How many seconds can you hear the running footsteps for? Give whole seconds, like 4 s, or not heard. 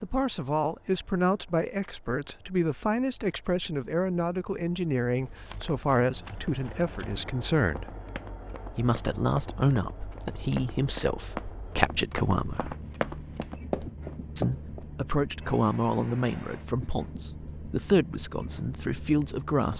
10 s.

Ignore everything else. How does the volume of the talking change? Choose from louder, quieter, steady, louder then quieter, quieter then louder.
steady.